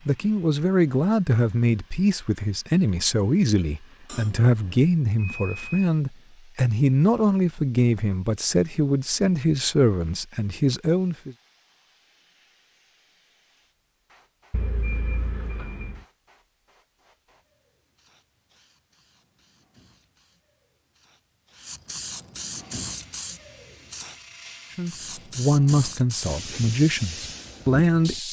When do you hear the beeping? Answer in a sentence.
The beeping can be heard from 5.2 to 5.9 s and from 14.5 to 16.0 s.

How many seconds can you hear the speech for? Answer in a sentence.
You can hear the speech for 15 seconds altogether.